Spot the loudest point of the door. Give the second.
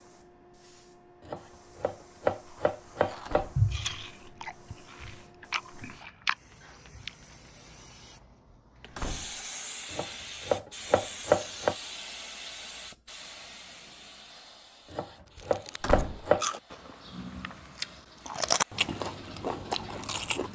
16 s.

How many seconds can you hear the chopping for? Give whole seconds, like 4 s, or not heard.
6 s.